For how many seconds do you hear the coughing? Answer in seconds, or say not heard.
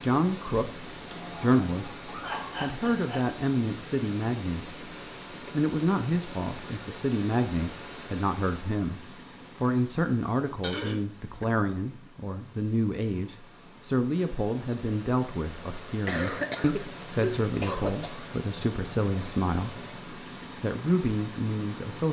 5 s.